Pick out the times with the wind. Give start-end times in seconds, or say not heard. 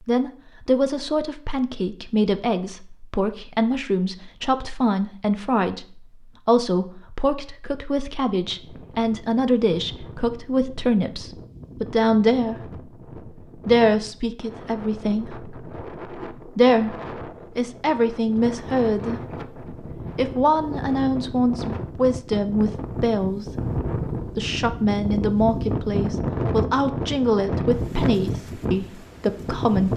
8.4-29.9.